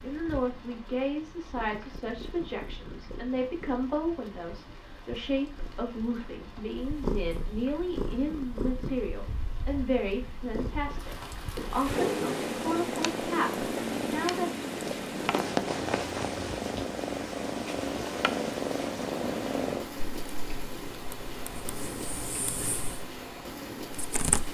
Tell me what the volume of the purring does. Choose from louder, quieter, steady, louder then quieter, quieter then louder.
louder then quieter.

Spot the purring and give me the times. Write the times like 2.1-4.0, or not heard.
0.0-24.4.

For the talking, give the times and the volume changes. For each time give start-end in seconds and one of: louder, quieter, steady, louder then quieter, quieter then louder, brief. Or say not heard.
0.0-14.5 steady.